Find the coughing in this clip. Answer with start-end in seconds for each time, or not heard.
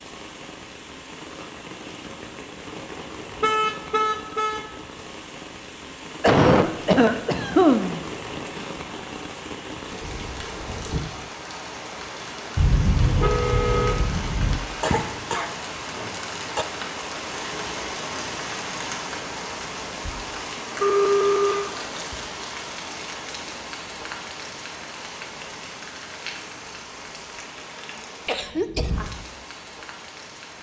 6.2-8.1, 14.8-16.6, 28.2-28.9.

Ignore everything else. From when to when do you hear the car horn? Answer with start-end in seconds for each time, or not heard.
3.4-4.7, 12.6-14.6, 20.8-21.8.